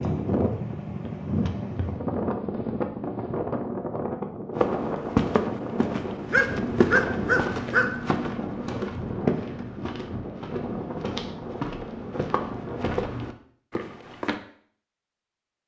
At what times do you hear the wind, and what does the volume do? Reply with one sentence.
The wind can be heard from 0.0 to 13.1 s, getting quieter.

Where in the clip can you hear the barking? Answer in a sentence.
The barking can be heard from 6.3 to 8.0 s.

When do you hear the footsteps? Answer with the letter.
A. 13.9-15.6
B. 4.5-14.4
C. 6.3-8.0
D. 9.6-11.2
B.